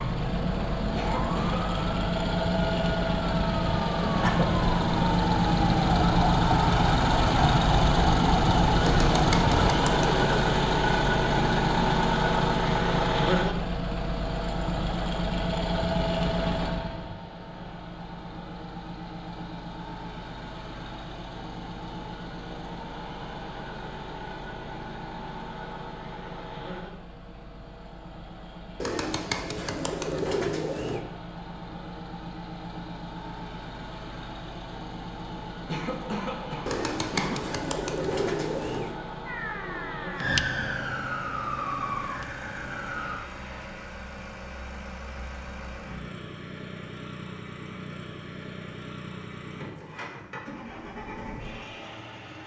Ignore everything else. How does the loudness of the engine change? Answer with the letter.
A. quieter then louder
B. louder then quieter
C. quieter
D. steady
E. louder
C.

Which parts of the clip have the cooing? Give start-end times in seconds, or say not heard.
8.8-10.3, 28.8-31.1, 36.6-39.0.